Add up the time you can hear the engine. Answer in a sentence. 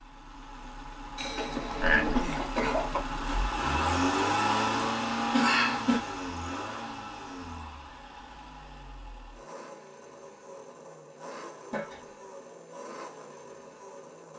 The engine can be heard for 14 seconds in total.